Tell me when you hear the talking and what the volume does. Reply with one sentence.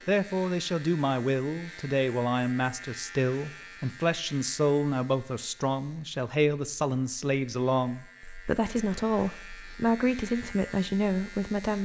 The talking can be heard from 0.1 to 11.8 s, at a steady volume.